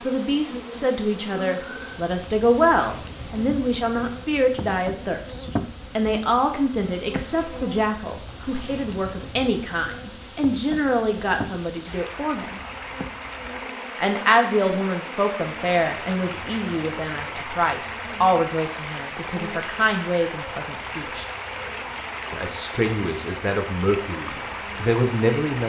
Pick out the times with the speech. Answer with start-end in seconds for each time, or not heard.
0.0-12.6, 13.9-21.2, 22.3-25.6.